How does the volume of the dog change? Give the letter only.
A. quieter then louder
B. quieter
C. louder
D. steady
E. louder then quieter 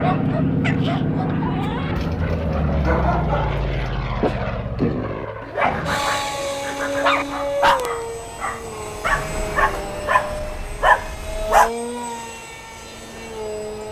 C.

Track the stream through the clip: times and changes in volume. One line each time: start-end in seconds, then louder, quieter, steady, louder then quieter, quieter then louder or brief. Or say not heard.
not heard.